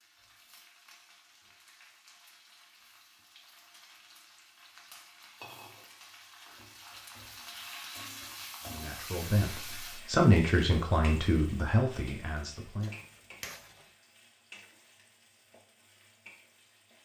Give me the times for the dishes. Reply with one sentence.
You can hear the dishes from 12.3 to 13.9 s.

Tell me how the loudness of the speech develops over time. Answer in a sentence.
The volume of the speech goes up, then down.